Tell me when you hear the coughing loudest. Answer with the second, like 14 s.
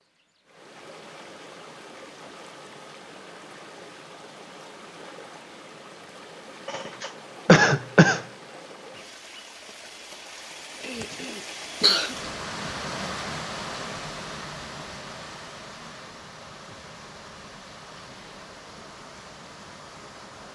8 s.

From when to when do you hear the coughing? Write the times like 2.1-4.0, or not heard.
6.7-8.2, 10.8-12.2.